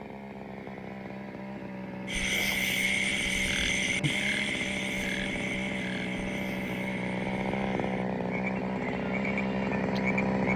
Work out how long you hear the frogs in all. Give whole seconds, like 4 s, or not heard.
8 s.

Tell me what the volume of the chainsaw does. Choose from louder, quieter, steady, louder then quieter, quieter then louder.
louder.